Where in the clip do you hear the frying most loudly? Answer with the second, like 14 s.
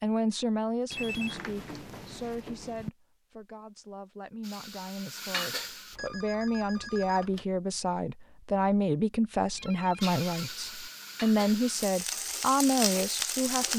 13 s.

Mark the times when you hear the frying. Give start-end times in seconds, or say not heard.
4.4-6.0, 10.0-13.7.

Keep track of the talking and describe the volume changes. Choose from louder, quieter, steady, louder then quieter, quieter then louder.
quieter then louder.